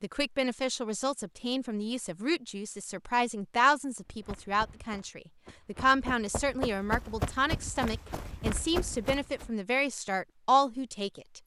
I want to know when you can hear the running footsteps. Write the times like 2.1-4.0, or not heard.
4.1-9.5.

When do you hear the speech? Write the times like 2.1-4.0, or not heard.
0.0-11.4.